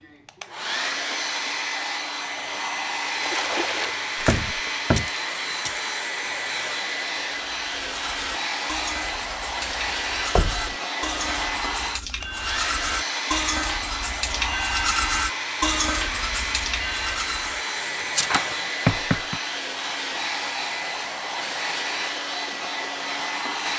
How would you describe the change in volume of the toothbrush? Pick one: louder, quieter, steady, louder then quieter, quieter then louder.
louder.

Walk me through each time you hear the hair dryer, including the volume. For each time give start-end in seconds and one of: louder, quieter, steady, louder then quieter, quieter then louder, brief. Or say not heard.
0.0-23.7 steady.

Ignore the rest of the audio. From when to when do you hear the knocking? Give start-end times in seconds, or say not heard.
4.2-5.1, 10.3-10.8, 17.8-19.4.